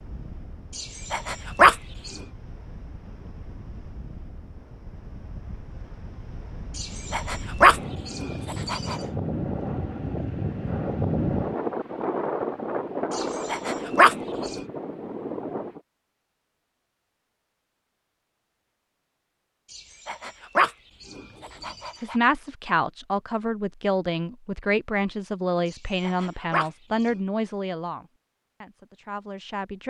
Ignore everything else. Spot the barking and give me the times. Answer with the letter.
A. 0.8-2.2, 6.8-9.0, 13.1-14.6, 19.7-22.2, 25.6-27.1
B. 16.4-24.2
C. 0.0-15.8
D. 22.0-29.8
A.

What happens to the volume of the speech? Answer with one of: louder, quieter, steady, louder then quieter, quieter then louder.
quieter.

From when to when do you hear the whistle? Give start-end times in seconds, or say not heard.
not heard.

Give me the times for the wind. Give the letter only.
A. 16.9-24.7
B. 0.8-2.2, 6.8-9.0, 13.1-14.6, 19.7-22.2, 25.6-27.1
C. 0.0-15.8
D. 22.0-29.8
C.